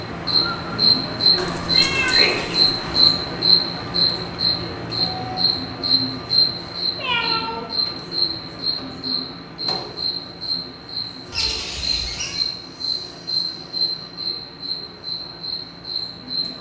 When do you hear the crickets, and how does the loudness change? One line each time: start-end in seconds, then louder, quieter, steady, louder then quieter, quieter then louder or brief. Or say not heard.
0.0-16.5 quieter.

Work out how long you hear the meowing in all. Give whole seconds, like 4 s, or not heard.
4 s.